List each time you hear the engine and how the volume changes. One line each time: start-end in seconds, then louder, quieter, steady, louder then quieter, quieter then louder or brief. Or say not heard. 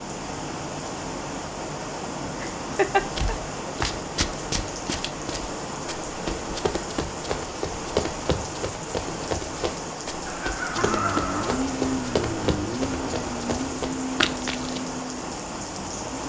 10.8-16.2 quieter.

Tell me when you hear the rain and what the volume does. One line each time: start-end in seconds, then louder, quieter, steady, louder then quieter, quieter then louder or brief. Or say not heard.
0.0-16.2 steady.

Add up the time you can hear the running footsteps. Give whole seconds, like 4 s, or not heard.
12 s.